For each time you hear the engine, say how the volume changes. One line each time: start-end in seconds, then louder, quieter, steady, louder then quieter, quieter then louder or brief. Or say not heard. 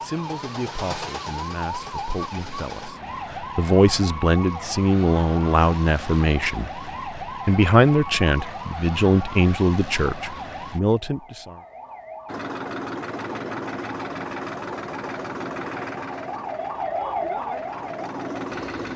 0.0-3.0 brief
12.2-18.9 quieter then louder.